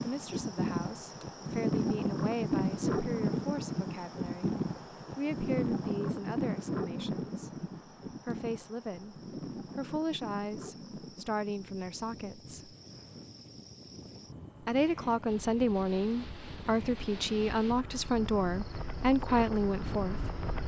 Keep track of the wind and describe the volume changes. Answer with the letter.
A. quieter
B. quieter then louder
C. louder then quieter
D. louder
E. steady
B.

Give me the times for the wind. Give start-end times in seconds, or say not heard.
0.0-20.6.